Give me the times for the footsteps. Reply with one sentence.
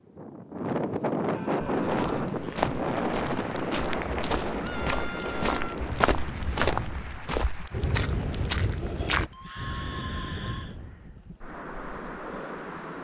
You can hear the footsteps from 1.8 to 9.3 s.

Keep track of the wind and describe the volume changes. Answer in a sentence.
The loudness of the wind goes down.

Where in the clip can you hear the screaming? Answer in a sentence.
You can hear the screaming from 1.3 to 2.3 s, from 4.6 to 5.8 s and from 9.3 to 10.8 s.